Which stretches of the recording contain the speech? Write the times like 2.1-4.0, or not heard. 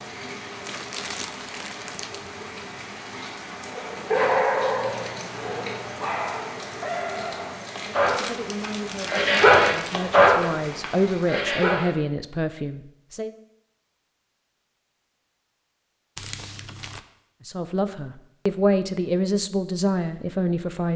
8.2-13.3, 17.4-20.9.